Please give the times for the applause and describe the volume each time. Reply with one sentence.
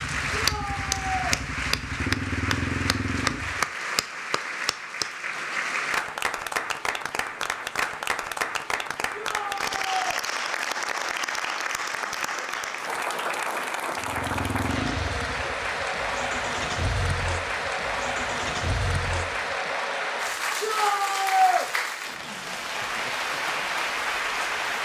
The applause can be heard from 0.0 to 24.8 s, at a steady volume.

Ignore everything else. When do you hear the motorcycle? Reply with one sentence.
The motorcycle can be heard from 0.0 to 3.6 s and from 13.9 to 19.6 s.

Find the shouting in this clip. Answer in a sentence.
The shouting can be heard from 0.3 to 1.4 s, from 9.1 to 10.2 s and from 20.6 to 21.6 s.